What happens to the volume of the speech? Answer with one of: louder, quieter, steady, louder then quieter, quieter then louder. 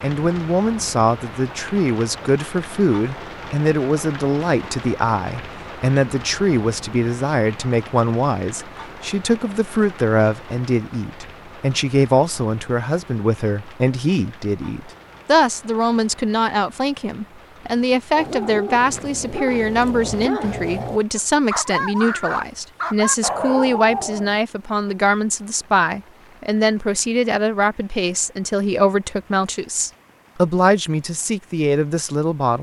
steady.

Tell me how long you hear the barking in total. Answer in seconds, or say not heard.
6 s.